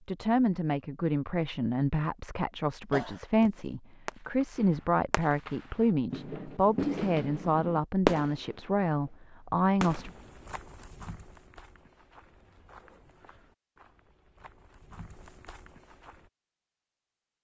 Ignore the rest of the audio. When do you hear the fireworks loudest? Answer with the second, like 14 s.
8 s.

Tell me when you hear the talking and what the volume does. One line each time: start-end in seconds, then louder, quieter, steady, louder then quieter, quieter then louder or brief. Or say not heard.
0.1-10.1 steady.